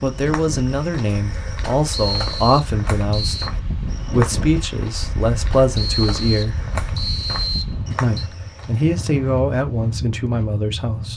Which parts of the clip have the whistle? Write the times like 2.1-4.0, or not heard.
1.9-3.5, 5.8-8.3.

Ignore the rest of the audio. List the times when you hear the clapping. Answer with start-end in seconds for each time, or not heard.
not heard.